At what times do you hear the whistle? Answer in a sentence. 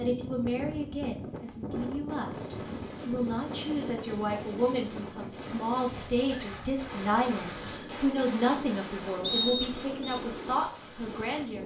The whistle can be heard from 9.2 to 10.2 s.